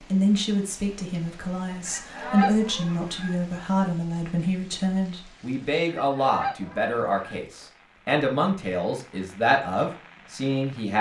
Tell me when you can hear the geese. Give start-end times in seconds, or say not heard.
1.9-3.4, 5.8-7.4.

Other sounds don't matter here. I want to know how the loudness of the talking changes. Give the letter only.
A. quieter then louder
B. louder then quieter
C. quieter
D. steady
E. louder
D.